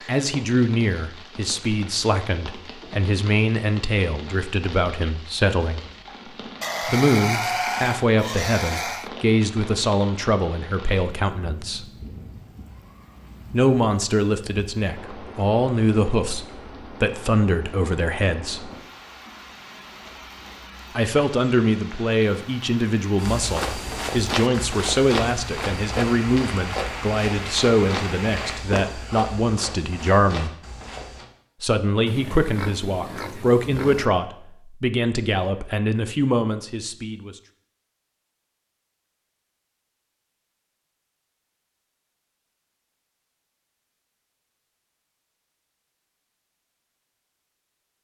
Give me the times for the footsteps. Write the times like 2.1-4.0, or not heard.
23.1-31.2.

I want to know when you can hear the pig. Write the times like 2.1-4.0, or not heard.
6.6-9.1, 32.0-34.1.